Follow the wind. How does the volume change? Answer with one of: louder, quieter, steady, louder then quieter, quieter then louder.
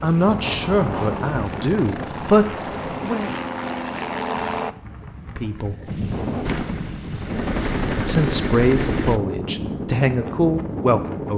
quieter then louder.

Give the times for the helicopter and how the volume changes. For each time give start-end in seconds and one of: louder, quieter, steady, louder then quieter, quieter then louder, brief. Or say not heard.
0.0-4.8 louder
6.4-9.2 brief.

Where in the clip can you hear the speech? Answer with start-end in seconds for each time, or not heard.
0.0-3.3, 5.3-5.8, 8.0-11.3.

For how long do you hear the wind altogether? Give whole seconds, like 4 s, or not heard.
11 s.